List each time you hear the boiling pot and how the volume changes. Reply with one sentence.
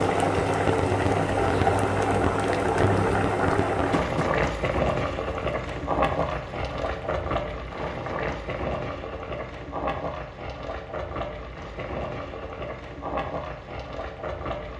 You can hear the boiling pot from 0.0 to 14.7 s, getting quieter.